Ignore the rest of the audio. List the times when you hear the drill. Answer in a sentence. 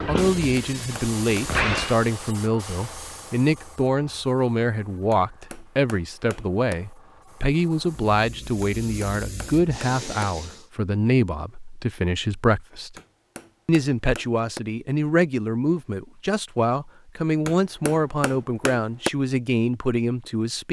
The drill can be heard from 0.0 to 2.0 s.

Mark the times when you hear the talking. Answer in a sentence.
The talking can be heard from 0.1 to 12.9 s and from 13.7 to 20.6 s.